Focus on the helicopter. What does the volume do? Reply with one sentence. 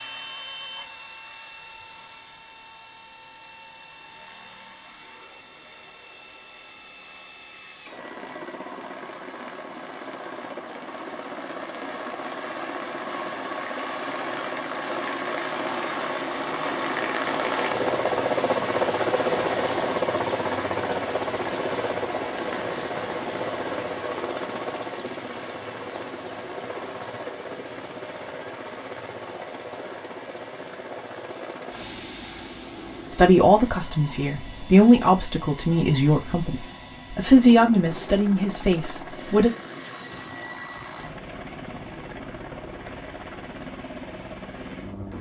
The loudness of the helicopter goes up, then down.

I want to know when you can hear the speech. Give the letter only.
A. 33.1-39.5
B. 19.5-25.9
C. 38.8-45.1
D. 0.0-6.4
A.